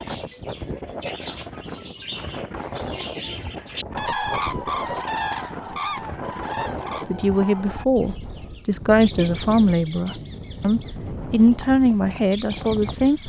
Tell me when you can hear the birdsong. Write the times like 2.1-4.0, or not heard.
0.0-13.2.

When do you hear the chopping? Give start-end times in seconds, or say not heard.
not heard.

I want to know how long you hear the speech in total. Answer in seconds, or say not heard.
6 s.